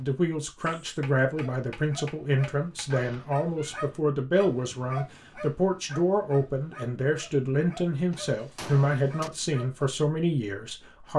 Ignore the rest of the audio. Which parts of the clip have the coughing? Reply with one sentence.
The coughing can't be heard in this clip.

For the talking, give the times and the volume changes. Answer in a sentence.
You can hear the talking from 0.0 to 11.1 s, at a steady volume.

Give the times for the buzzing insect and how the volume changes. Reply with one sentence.
You can't hear the buzzing insect here.